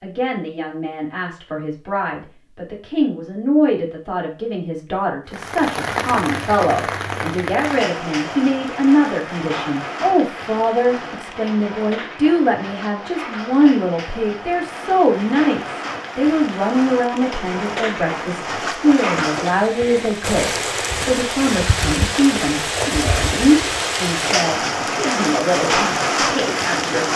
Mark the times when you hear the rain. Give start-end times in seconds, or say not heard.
5.3-27.1.